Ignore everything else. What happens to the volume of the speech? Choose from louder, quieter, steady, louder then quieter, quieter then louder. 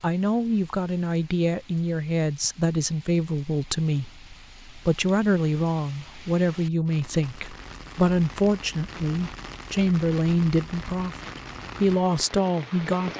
steady.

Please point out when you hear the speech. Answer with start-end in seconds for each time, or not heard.
0.0-13.1.